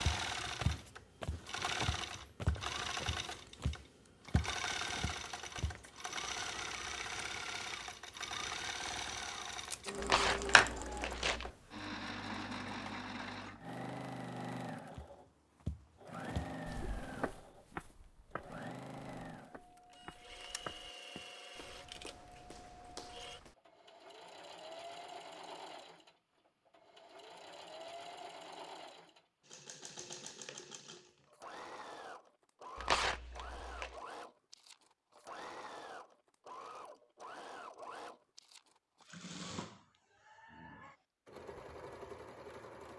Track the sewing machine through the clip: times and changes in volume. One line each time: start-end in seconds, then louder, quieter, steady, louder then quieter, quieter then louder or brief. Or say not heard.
0.0-42.9 quieter.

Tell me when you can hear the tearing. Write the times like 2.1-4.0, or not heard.
10.0-11.5, 32.8-33.9.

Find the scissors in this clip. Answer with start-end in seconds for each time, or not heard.
9.7-10.8.